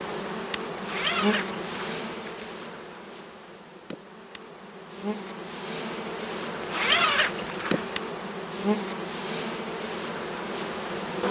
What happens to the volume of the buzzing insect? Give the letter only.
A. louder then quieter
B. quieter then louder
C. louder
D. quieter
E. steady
B.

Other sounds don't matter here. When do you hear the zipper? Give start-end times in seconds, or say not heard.
0.8-2.5, 6.6-8.0.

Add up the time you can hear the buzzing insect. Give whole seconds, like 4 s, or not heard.
11 s.